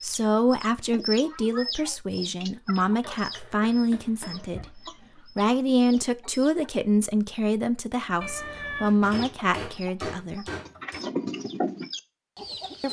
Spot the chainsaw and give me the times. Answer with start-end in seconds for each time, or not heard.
not heard.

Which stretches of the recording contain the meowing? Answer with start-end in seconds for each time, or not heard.
8.2-8.9.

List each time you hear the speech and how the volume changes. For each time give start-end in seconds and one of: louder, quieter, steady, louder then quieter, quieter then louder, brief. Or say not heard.
0.0-10.4 steady.